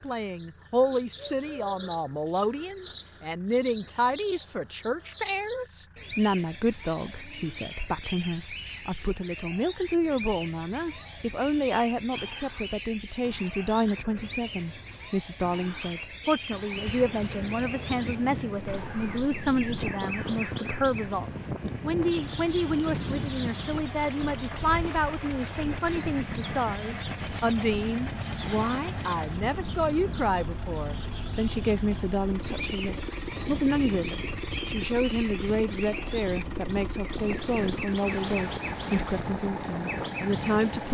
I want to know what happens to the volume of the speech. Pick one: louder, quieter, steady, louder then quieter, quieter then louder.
steady.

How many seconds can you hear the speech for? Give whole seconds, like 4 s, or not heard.
41 s.